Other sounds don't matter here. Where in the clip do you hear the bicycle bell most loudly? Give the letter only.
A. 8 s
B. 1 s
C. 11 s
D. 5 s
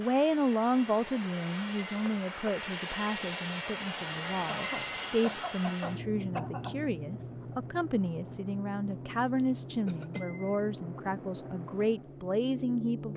D.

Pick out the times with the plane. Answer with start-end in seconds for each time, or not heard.
0.0-13.1.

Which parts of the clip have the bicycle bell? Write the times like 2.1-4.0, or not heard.
1.8-2.2, 4.6-5.1, 10.2-10.6.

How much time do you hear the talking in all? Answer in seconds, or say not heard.
13 s.